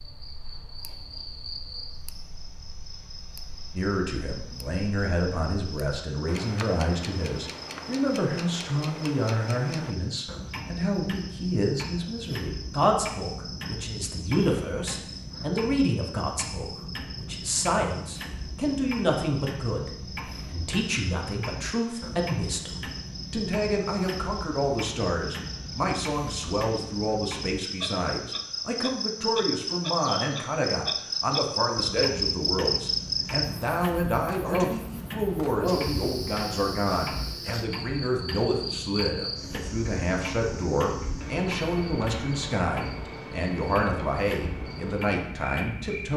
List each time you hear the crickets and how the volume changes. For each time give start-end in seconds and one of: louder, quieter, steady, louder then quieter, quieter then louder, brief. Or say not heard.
0.0-46.1 louder then quieter.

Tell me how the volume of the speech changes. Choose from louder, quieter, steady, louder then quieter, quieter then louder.
steady.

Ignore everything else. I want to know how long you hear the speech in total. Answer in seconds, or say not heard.
42 s.